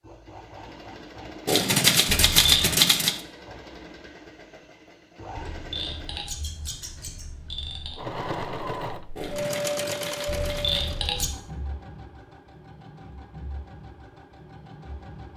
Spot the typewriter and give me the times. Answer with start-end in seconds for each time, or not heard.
1.4-3.2, 9.2-11.0.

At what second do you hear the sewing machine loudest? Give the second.
10 s.